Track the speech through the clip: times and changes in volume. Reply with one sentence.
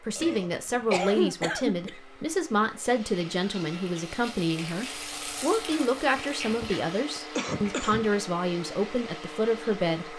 You can hear the speech from 0.0 to 10.1 s, at a steady volume.